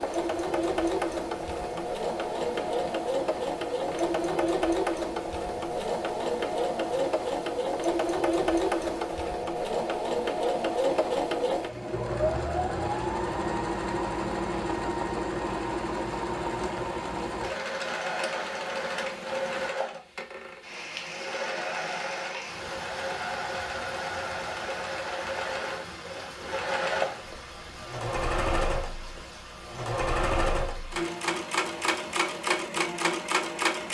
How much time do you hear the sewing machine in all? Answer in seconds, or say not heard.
34 s.